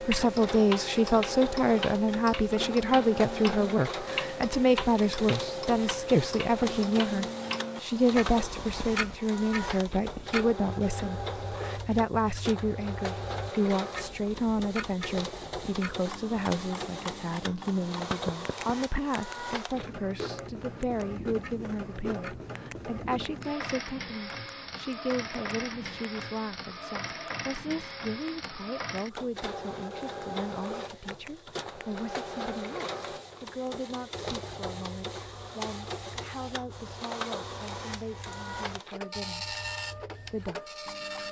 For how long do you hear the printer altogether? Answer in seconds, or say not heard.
41 s.